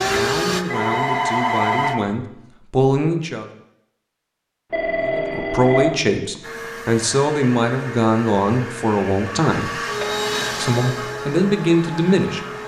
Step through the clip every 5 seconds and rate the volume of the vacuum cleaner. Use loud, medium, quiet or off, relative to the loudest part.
loud, medium, loud.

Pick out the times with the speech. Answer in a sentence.
The speech can be heard from 0.0 to 3.5 s, from 5.0 to 9.7 s and from 10.5 to 12.4 s.